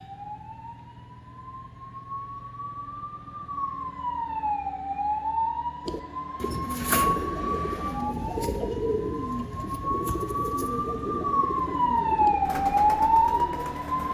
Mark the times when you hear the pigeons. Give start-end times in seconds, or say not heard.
5.8-14.1.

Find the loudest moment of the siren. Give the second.
13 s.